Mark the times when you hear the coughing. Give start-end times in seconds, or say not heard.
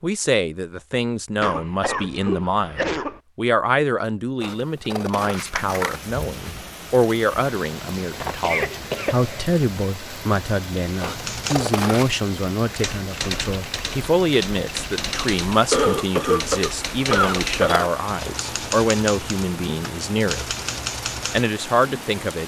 1.4-3.2, 8.1-9.4, 15.7-17.9.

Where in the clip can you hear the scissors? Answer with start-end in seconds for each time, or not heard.
4.4-6.0, 11.0-12.2, 17.1-17.9.